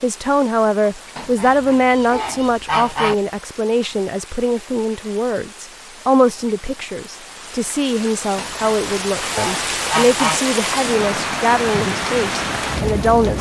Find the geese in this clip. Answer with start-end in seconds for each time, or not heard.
1.1-3.1, 8.3-10.4.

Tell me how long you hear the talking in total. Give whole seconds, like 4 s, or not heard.
13 s.